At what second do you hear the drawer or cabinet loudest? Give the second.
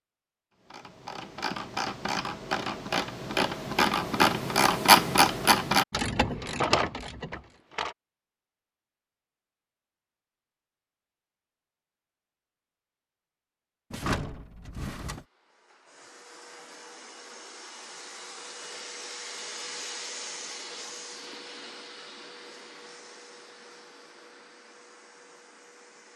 7 s.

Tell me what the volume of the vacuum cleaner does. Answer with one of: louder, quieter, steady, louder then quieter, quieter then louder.
louder then quieter.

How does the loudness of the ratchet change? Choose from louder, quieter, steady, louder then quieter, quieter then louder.
louder then quieter.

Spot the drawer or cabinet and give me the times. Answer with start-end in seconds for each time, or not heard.
6.3-8.0, 13.9-15.2.